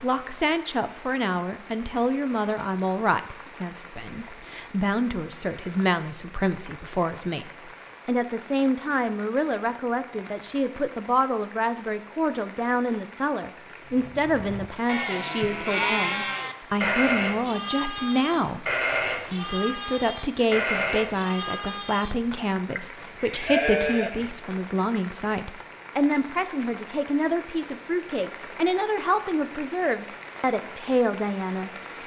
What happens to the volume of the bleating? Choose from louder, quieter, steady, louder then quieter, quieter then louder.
steady.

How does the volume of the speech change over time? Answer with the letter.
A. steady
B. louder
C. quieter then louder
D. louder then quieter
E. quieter
A.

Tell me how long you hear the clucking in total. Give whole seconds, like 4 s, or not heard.
not heard.